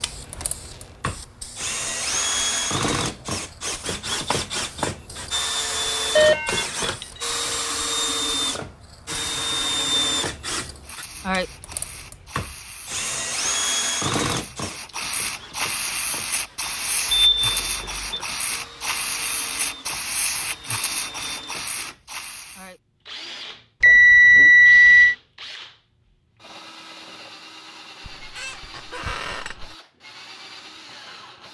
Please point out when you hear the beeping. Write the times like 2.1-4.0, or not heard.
6.2-7.3, 17.1-17.9, 23.8-25.1.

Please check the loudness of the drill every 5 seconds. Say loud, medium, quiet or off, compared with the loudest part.
loud, loud, loud, quiet, quiet, quiet, quiet.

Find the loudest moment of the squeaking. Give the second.
29 s.